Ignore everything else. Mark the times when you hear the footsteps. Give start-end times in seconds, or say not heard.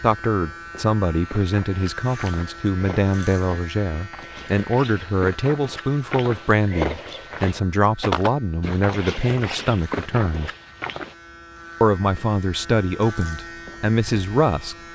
1.2-11.2.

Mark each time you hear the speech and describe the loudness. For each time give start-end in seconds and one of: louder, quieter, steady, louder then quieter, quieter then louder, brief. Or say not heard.
0.0-10.5 steady
11.8-14.8 brief.